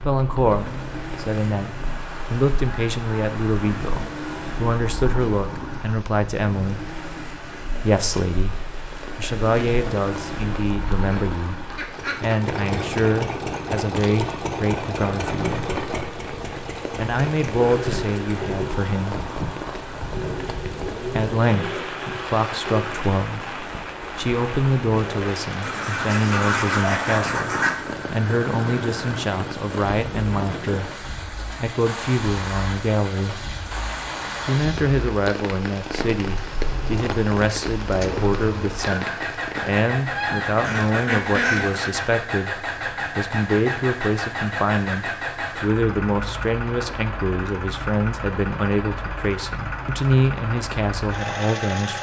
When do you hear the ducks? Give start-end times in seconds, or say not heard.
10.9-12.4, 25.6-27.9, 40.1-42.0.